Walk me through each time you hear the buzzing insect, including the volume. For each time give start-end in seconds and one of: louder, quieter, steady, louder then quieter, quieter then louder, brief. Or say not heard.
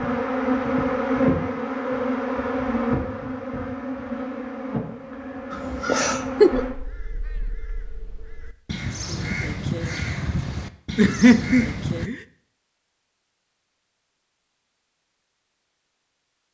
0.0-6.8 quieter.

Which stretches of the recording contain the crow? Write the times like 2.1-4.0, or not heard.
5.5-12.1.